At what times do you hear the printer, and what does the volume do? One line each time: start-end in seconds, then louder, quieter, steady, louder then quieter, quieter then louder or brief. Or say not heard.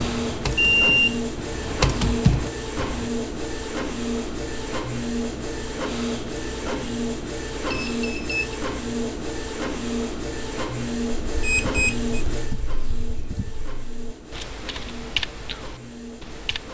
0.0-16.6 quieter.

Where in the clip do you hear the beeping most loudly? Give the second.
1 s.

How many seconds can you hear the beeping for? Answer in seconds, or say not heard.
2 s.